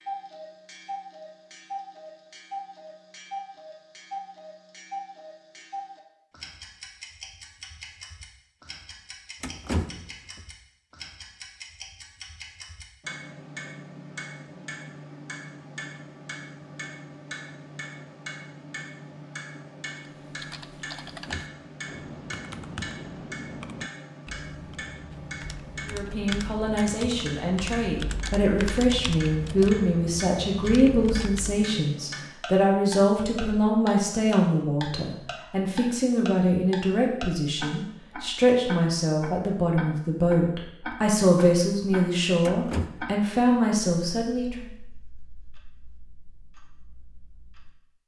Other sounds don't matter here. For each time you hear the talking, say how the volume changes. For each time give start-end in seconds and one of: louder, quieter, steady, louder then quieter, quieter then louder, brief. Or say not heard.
25.9-44.6 steady.